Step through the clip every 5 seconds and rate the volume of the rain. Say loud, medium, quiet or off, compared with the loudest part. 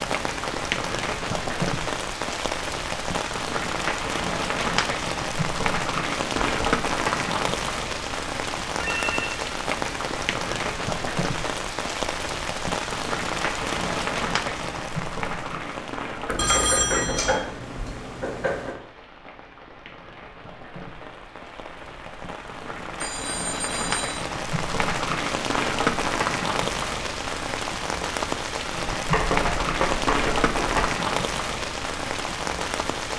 loud, loud, loud, medium, medium, loud, loud.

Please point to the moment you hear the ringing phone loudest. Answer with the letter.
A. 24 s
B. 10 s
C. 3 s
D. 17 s
D.